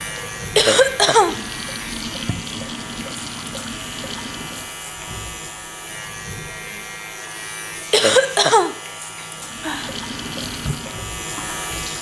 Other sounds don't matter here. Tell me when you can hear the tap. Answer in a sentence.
The tap can be heard from 0.0 to 4.8 s and from 9.4 to 11.9 s.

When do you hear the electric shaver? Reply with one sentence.
You can hear the electric shaver from 0.0 to 11.9 s.